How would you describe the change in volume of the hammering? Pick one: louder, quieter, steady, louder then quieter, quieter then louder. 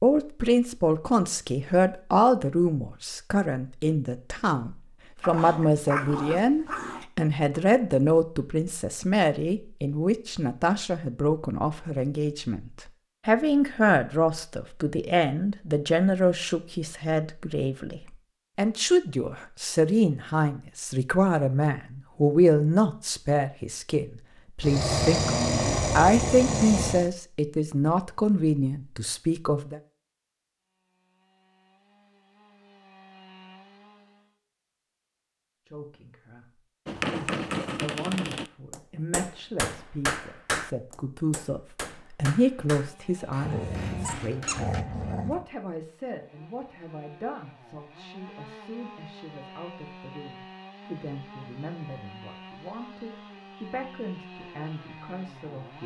quieter.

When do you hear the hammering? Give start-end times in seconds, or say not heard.
36.9-44.9.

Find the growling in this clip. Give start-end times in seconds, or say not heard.
5.2-7.0, 24.6-27.1, 43.4-45.5.